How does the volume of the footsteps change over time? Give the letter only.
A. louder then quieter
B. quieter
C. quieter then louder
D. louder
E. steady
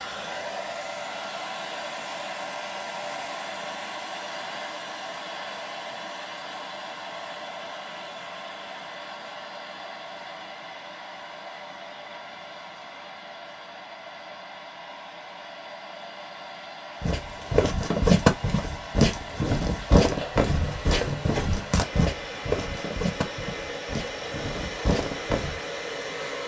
B.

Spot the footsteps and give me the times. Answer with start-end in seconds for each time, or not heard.
17.0-25.6.